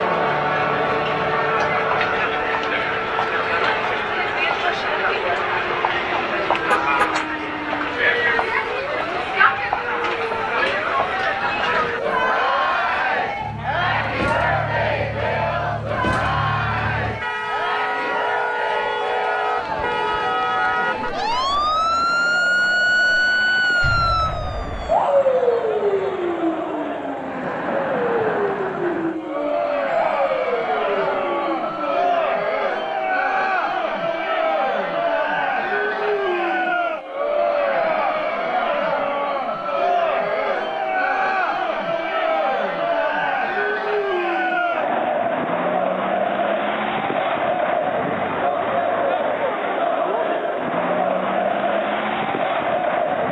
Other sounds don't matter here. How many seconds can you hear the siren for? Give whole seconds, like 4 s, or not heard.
32 s.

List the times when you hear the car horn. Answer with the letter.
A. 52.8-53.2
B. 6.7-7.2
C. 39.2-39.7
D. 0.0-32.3
B.